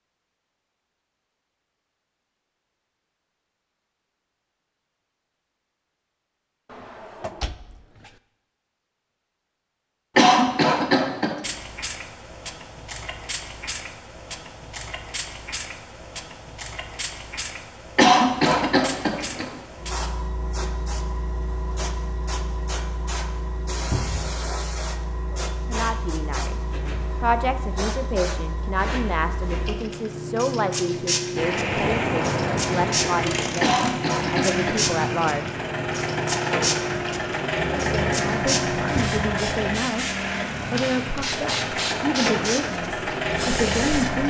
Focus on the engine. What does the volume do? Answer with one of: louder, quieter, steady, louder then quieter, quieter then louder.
steady.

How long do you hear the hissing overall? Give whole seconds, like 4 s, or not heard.
33 s.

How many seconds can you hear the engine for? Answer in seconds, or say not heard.
13 s.